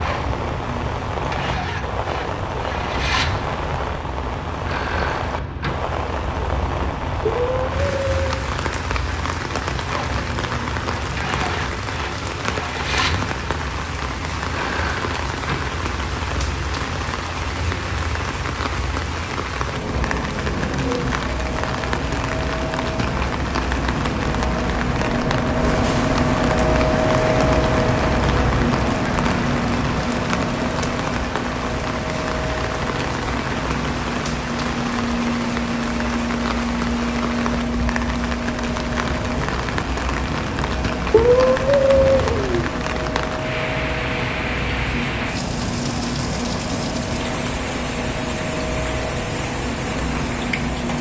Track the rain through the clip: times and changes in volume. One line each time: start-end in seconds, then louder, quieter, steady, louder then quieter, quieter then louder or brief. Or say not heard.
0.0-50.9 steady.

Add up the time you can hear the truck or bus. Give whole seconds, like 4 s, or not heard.
51 s.